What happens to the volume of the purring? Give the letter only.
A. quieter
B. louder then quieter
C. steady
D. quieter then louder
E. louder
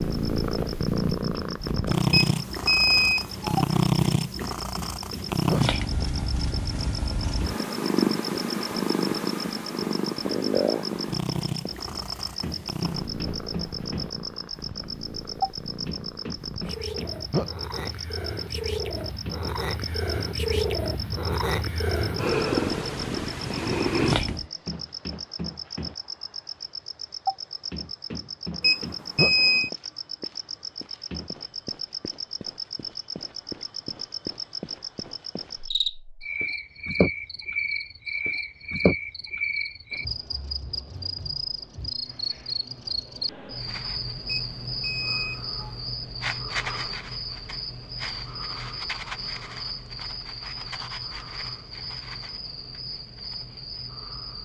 D.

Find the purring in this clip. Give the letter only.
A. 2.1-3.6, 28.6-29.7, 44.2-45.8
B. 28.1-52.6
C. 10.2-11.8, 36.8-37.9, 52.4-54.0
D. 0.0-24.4
D.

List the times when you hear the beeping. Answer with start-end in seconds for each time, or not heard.
2.1-3.6, 28.6-29.7, 44.2-45.8.